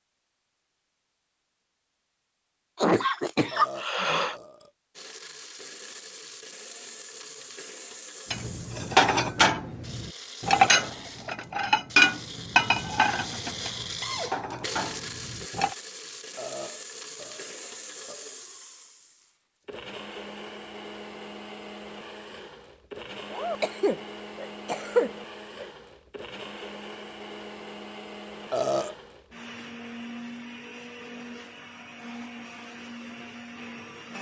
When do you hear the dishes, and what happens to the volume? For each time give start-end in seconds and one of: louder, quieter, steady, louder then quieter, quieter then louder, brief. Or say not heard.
8.3-15.8 quieter.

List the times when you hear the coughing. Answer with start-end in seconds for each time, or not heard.
2.8-4.3, 23.3-25.6.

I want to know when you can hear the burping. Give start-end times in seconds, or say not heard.
3.5-4.7, 16.4-18.4, 28.5-28.9.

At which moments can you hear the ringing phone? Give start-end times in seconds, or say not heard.
not heard.